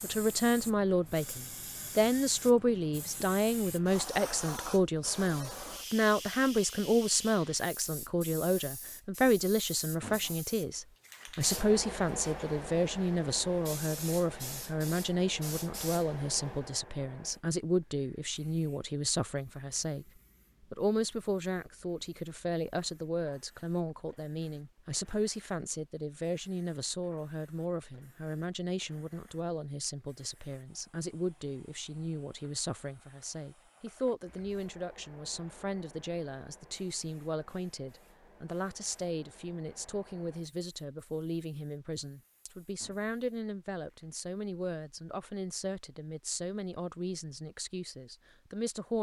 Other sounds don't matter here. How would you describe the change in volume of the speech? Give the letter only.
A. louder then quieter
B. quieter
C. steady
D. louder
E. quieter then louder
B.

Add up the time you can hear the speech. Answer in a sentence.
The speech can be heard for 48 seconds in total.